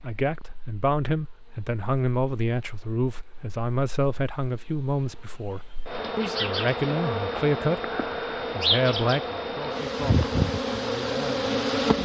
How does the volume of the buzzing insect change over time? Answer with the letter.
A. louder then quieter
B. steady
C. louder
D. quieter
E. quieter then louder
C.